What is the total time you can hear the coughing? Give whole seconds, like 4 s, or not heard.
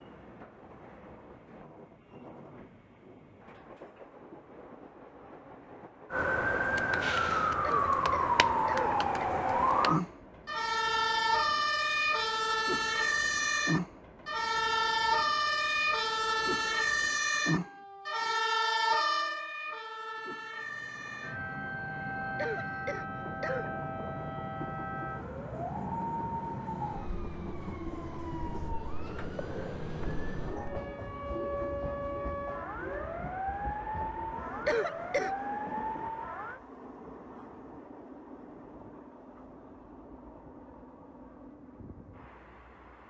4 s.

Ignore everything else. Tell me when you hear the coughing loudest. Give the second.
35 s.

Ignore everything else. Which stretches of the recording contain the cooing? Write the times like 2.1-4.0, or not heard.
not heard.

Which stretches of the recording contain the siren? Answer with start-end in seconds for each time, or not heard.
6.1-36.6.